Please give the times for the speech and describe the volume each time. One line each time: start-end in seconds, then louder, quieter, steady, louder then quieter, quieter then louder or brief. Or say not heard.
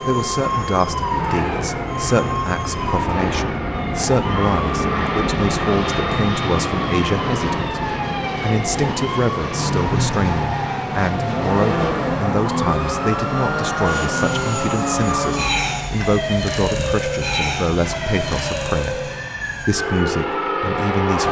0.1-21.2 steady.